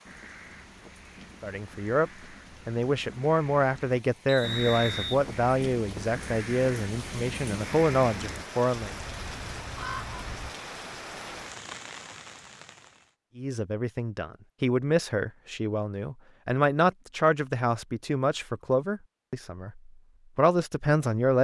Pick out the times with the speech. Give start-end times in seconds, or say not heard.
1.4-8.9, 13.3-21.3.